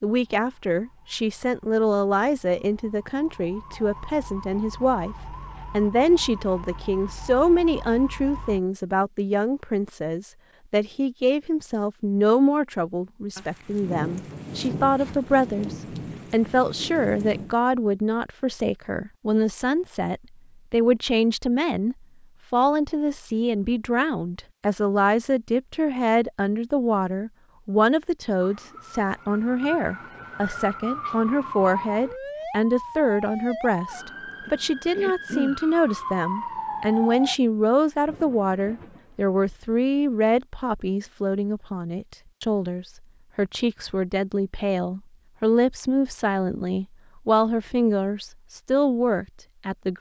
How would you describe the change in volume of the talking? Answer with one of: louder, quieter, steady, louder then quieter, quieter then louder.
steady.